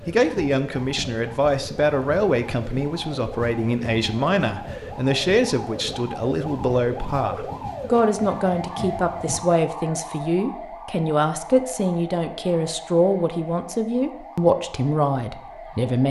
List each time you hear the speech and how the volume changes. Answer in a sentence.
You can hear the speech from 0.1 to 16.0 s, at a steady volume.